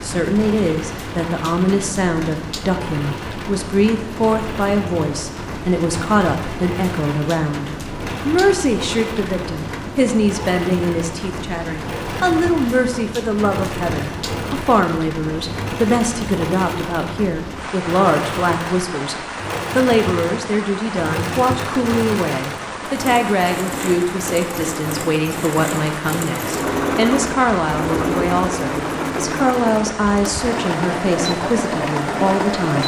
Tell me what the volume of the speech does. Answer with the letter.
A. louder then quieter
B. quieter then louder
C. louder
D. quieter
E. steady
E.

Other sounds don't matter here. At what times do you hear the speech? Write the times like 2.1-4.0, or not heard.
0.0-32.8.